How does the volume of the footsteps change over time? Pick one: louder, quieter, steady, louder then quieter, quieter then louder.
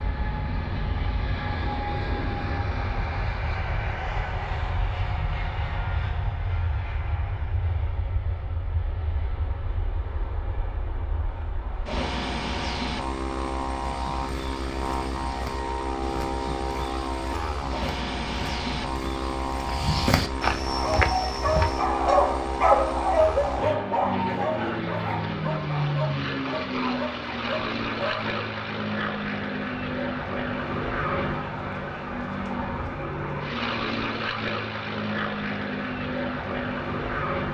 louder.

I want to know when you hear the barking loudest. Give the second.
23 s.